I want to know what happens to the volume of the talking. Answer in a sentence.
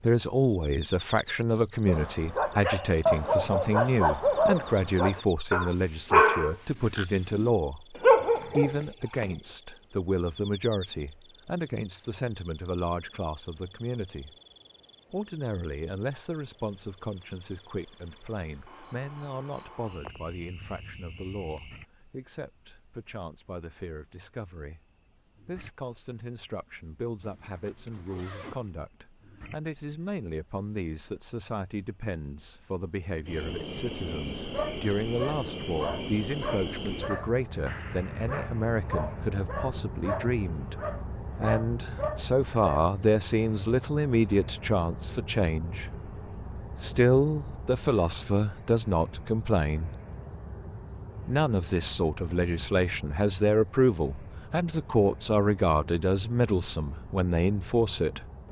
The volume of the talking goes down, then up.